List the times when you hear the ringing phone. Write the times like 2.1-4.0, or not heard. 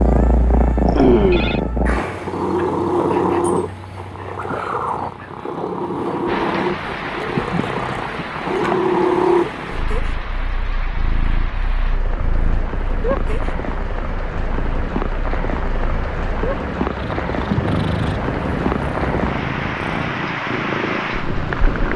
0.9-1.6.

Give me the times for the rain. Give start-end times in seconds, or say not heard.
6.2-21.9.